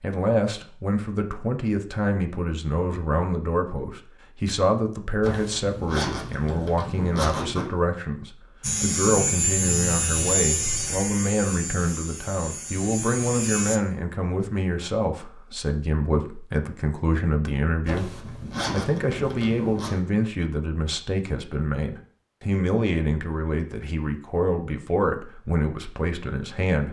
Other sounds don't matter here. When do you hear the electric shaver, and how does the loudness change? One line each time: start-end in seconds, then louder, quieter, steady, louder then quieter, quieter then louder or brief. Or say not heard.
8.6-13.8 quieter.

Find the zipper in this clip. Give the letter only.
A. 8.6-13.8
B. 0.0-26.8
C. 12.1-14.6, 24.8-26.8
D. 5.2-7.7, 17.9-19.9
D.